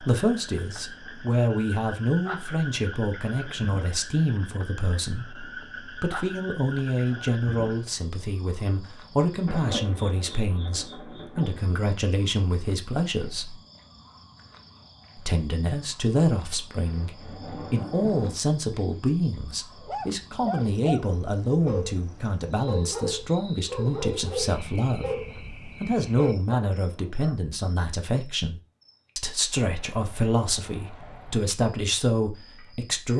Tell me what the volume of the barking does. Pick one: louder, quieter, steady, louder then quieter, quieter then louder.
steady.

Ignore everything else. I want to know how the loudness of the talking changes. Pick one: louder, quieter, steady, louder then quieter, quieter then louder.
steady.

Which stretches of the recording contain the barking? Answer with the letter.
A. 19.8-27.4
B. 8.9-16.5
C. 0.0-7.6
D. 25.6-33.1
A.